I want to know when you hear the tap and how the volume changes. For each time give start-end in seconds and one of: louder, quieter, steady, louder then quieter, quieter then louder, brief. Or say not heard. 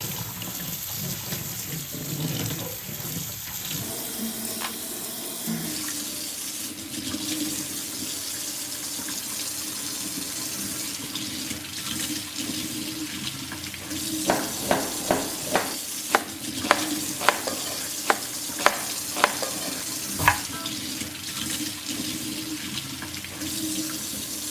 0.0-24.4 steady.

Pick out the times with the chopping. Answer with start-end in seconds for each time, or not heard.
14.2-20.7.